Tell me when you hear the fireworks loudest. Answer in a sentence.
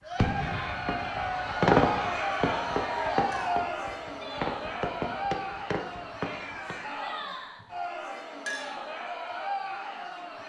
The volume of the fireworks peaks at 2 seconds.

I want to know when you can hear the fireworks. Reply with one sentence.
You can hear the fireworks from 0.1 to 6.8 s.